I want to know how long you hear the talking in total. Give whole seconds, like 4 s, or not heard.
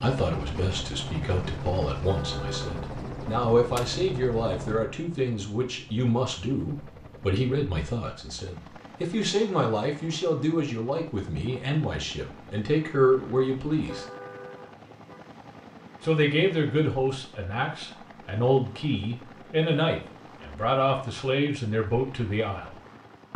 21 s.